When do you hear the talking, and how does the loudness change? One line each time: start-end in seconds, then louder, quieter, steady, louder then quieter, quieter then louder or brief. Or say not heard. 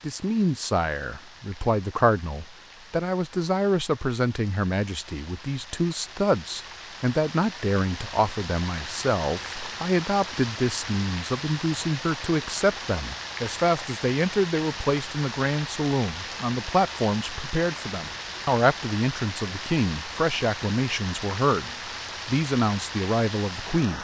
0.0-23.9 steady.